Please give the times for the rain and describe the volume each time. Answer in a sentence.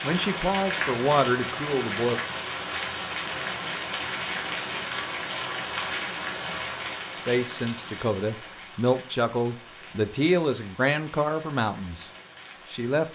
You can hear the rain from 0.0 to 13.1 s, getting quieter.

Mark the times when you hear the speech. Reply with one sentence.
You can hear the speech from 0.0 to 2.2 s, from 7.2 to 12.1 s and from 12.7 to 13.1 s.